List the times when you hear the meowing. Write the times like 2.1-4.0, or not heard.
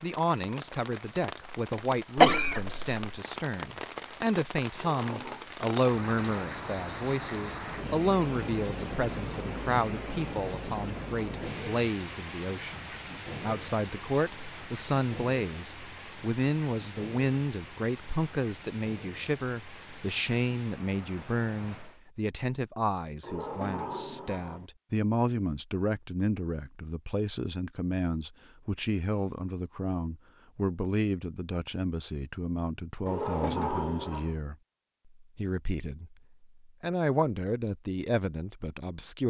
not heard.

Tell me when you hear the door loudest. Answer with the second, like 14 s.
34 s.